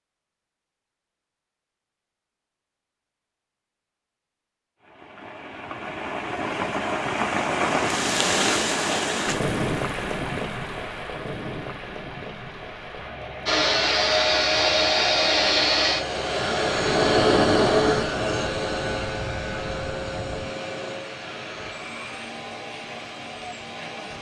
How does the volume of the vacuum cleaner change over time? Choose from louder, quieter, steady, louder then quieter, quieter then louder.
quieter.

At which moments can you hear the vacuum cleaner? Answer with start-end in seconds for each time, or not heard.
13.4-24.1.